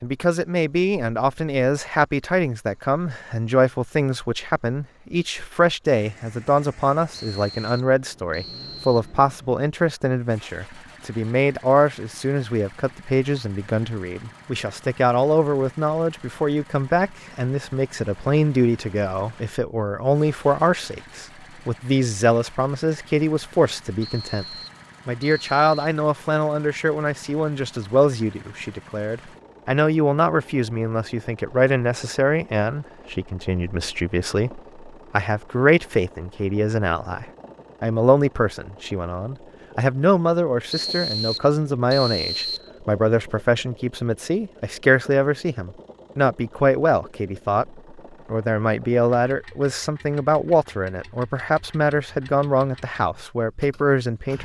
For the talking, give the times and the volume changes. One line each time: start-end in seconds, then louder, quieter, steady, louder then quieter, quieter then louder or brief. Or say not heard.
0.0-24.4 steady
25.1-54.3 steady.